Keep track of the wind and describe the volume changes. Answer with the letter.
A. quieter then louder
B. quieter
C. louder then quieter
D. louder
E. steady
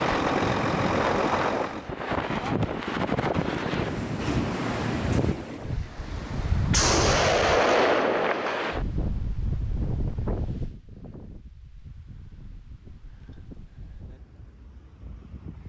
B.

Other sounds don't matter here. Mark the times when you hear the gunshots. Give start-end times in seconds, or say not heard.
6.7-8.8.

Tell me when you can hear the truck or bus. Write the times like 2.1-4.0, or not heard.
0.0-1.9.